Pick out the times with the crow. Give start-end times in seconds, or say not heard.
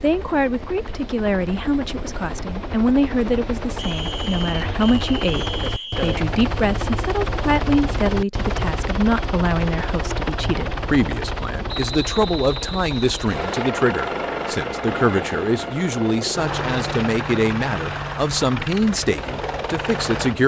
not heard.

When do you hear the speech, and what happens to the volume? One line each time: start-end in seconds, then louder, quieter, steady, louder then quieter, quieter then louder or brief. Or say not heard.
0.0-20.4 steady.